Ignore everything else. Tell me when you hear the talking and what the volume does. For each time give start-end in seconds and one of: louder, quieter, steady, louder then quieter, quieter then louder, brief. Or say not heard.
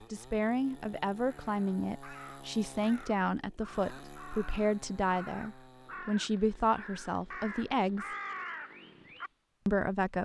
0.1-8.1 steady
9.7-10.2 brief.